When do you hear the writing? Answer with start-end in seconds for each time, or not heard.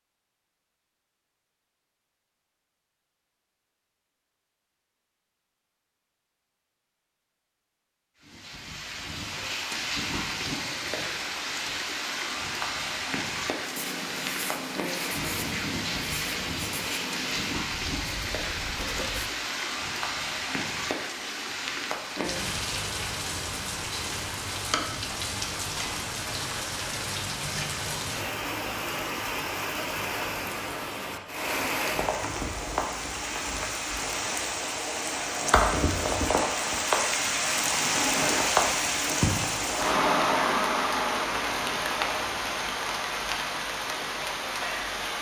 13.7-19.3.